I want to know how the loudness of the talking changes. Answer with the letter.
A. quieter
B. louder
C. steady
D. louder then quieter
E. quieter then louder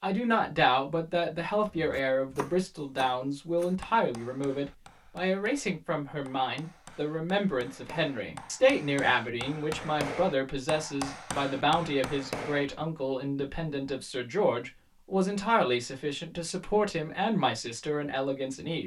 C.